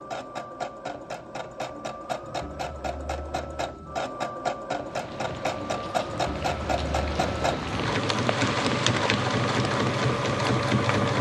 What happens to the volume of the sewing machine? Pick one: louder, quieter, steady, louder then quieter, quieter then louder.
louder.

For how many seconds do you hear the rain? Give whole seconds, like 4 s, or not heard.
6 s.